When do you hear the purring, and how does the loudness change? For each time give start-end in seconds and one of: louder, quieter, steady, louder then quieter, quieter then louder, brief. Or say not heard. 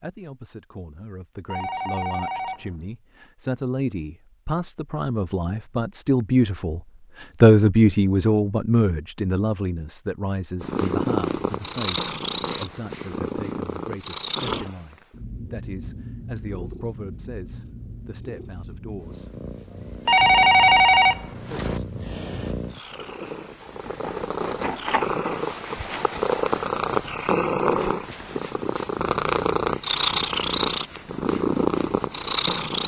10.6-32.8 quieter then louder.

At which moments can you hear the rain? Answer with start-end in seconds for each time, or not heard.
not heard.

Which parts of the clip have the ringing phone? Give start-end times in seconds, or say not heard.
1.5-2.7, 20.1-21.8.